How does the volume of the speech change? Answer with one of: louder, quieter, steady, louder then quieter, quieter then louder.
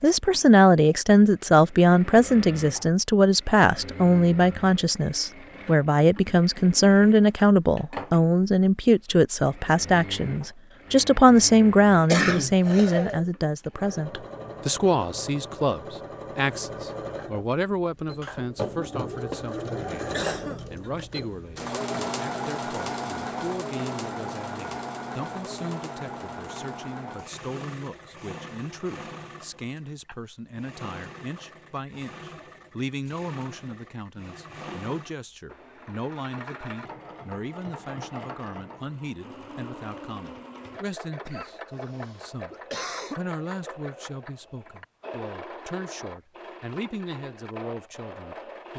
quieter.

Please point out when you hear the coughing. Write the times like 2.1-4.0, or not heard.
12.1-13.2, 19.3-20.6, 41.2-43.2.